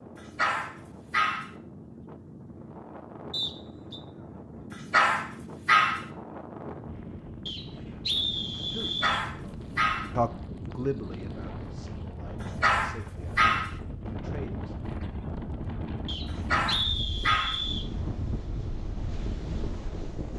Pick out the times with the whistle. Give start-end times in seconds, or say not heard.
3.3-4.0, 7.5-9.2, 16.1-17.9.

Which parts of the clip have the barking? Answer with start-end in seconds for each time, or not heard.
0.3-1.5, 4.9-6.0, 9.0-10.1, 12.6-13.7, 16.5-17.6.